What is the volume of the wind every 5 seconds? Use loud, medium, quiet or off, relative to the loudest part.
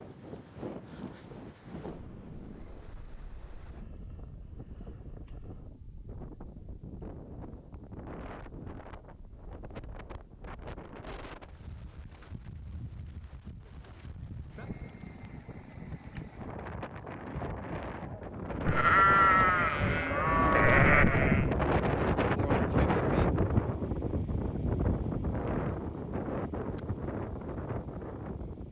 quiet, quiet, quiet, medium, loud, medium.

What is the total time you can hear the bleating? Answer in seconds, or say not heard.
3 s.